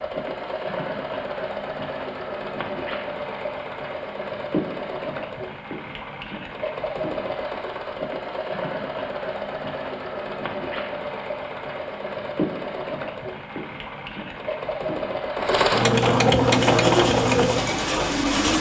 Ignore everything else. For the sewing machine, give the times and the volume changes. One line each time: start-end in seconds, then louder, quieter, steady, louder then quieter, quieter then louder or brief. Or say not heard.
0.0-18.4 louder.